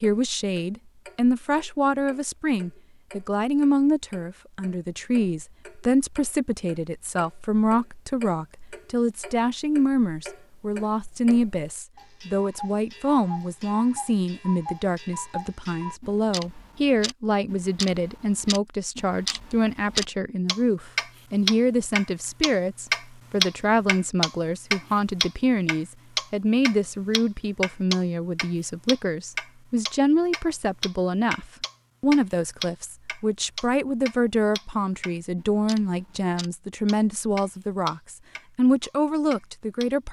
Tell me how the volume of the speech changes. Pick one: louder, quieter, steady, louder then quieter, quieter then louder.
steady.